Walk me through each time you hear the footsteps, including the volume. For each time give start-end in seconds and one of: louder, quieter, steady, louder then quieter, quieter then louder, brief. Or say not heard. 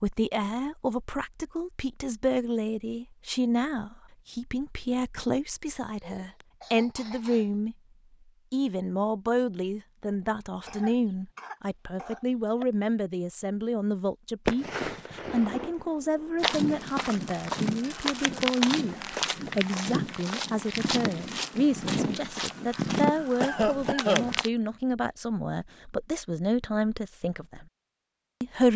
16.4-24.5 steady.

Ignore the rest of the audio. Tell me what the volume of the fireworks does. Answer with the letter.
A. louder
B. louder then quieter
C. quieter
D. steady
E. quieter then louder
E.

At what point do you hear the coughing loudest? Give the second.
24 s.